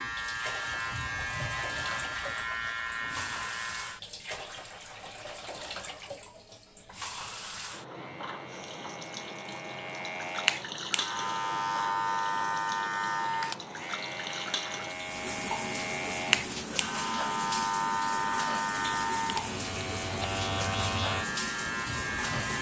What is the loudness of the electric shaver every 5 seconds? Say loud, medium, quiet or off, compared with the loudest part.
loud, quiet, loud, loud, loud.